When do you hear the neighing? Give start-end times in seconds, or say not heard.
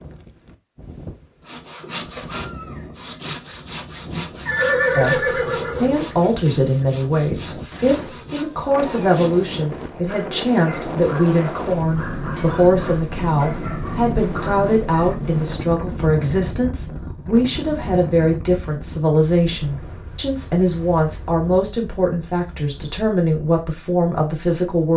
4.5-6.3.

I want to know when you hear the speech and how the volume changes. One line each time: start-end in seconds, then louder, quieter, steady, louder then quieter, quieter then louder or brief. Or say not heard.
5.0-24.9 steady.